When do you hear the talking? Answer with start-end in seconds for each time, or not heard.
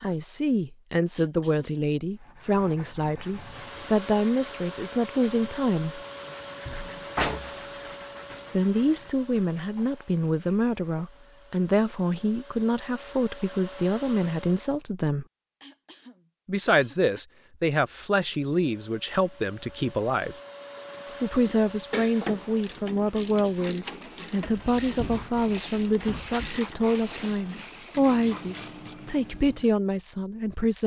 0.0-6.0, 8.5-15.2, 16.4-20.4, 21.2-30.8.